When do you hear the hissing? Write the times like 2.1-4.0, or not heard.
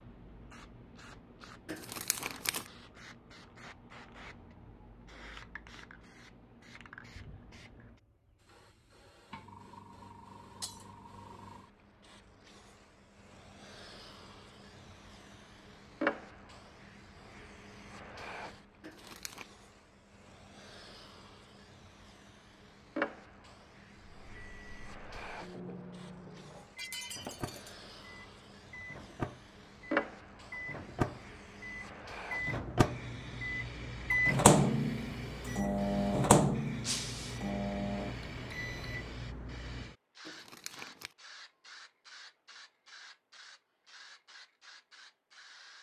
0.0-45.7.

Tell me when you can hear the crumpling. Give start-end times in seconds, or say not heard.
1.6-2.7, 18.8-19.4, 40.2-41.1.